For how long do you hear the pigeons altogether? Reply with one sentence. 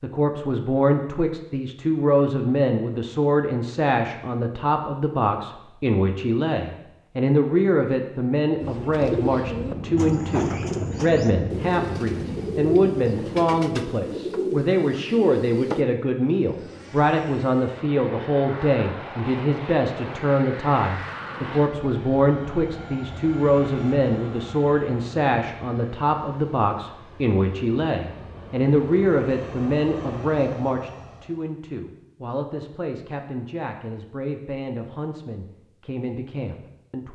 You can hear the pigeons for 7 seconds altogether.